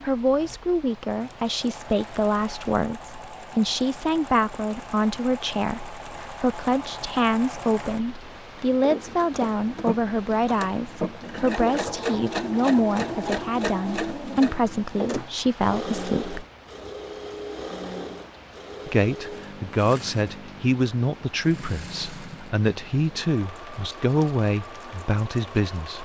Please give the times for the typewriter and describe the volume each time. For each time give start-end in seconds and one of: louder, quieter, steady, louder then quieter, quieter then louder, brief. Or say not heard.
not heard.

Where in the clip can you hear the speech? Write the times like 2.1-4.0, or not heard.
0.0-16.4, 18.9-26.0.